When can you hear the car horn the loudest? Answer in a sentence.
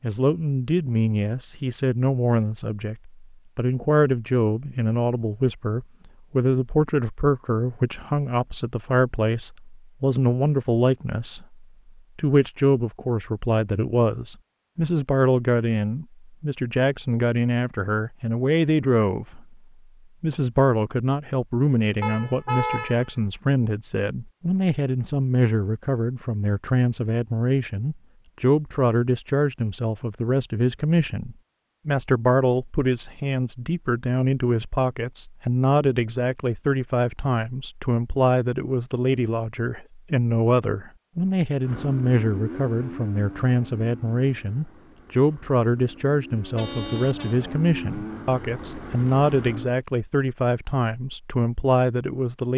The loudest moment of the car horn is at 23 seconds.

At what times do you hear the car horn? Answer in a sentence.
You can hear the car horn from 22.0 to 23.1 s and from 46.5 to 47.4 s.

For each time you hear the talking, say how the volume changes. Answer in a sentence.
You can hear the talking from 0.0 to 19.6 s, at a steady volume; and from 20.2 to 52.5 s, at a steady volume.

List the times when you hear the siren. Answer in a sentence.
You can't hear the siren here.